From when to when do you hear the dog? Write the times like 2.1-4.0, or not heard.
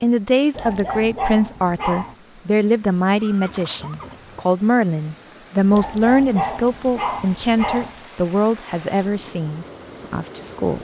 0.5-2.1, 5.7-8.0.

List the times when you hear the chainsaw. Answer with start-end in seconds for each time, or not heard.
not heard.